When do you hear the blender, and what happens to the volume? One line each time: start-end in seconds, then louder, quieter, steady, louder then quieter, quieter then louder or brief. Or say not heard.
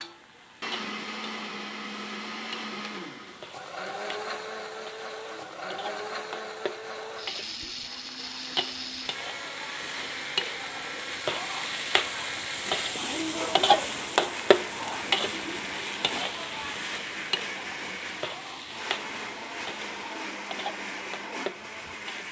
0.0-22.2 steady.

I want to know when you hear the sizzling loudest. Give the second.
14 s.